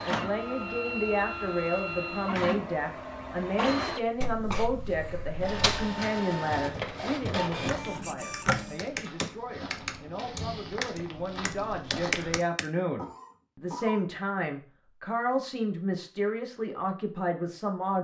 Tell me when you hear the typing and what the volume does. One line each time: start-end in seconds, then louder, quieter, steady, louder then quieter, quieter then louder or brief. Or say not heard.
7.5-12.7 louder.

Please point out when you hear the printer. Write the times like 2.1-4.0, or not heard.
0.0-8.8.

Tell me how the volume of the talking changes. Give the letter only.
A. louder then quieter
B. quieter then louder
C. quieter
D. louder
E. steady
B.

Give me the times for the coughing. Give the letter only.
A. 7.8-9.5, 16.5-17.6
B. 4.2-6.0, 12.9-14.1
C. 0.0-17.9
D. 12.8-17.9
B.